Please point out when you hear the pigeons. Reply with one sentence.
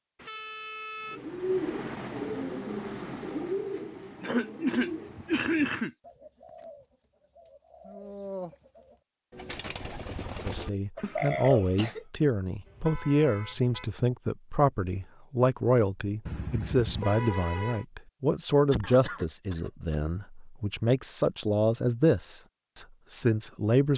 You can hear the pigeons from 1.1 to 11.9 s.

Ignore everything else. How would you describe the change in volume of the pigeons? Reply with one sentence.
The loudness of the pigeons goes down, then up.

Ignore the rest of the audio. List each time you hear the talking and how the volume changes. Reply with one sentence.
You can hear the talking from 10.4 to 23.9 s, at a steady volume.